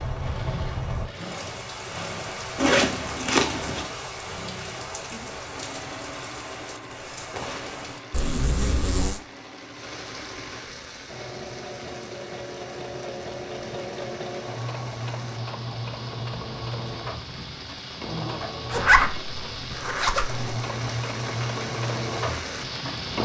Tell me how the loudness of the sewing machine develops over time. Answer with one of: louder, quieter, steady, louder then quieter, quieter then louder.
louder.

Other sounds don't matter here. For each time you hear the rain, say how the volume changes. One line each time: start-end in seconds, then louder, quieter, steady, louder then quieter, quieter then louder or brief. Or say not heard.
0.0-23.2 quieter then louder.